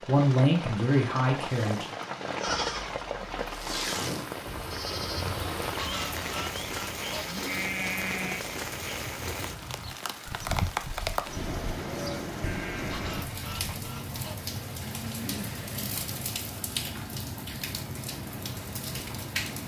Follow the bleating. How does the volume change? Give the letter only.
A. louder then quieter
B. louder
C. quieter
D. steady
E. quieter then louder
C.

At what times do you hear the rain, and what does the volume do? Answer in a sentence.
You can hear the rain from 0.0 to 19.6 s, at a steady volume.